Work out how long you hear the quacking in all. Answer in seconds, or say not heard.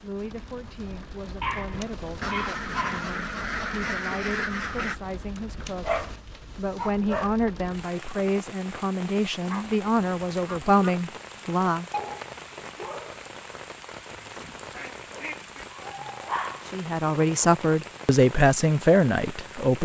6 s.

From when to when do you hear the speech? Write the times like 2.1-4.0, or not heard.
0.0-11.8, 16.7-19.7.